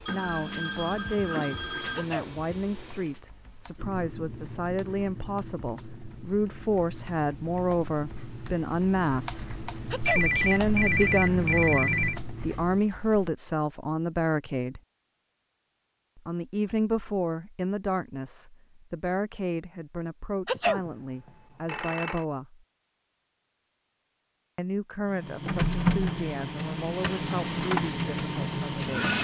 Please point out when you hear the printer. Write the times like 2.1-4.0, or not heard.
0.0-3.2, 25.1-29.1.